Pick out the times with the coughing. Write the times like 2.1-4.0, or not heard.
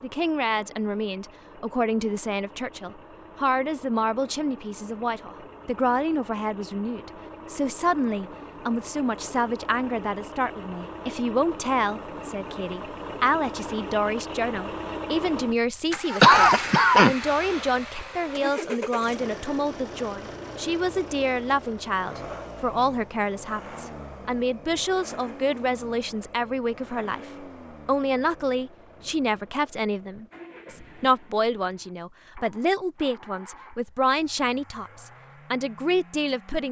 16.2-17.6.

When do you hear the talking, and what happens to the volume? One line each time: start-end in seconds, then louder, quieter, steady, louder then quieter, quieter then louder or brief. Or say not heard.
0.0-36.6 steady.